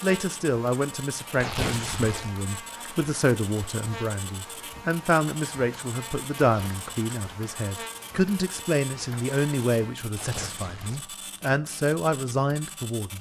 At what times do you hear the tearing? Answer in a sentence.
The tearing can be heard from 1.4 to 2.4 s, from 6.4 to 7.0 s and from 10.2 to 11.1 s.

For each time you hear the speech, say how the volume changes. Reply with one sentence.
The speech can be heard from 0.0 to 13.1 s, at a steady volume.